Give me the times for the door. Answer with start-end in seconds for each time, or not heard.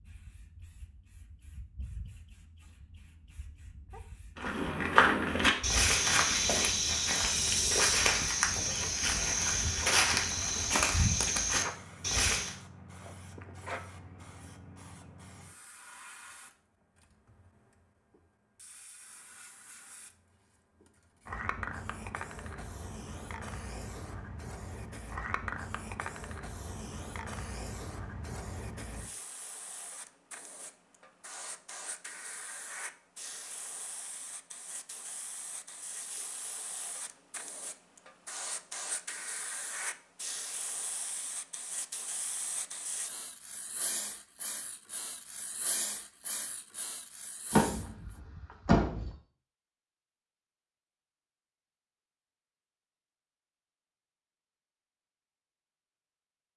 47.5-49.1.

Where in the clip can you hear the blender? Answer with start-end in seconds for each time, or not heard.
not heard.